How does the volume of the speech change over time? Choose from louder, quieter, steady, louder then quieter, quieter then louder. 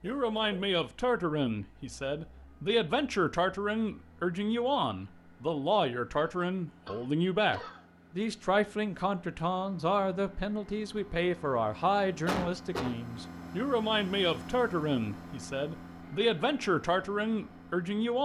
steady.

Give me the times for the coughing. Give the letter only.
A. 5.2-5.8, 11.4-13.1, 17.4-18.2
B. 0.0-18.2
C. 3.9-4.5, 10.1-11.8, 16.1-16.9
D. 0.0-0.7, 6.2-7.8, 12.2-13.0
D.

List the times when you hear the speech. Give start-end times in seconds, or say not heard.
0.0-18.2.